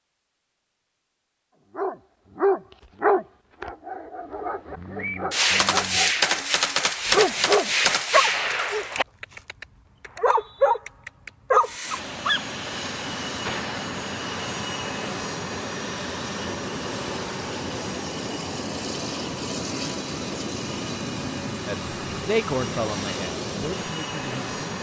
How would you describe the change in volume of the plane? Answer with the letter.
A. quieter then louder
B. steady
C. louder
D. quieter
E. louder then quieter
B.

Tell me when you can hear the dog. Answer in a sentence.
You can hear the dog from 1.8 to 12.4 s.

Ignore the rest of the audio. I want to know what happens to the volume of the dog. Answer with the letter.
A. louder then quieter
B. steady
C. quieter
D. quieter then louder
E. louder
D.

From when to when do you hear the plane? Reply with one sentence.
The plane can be heard from 11.6 to 24.7 s.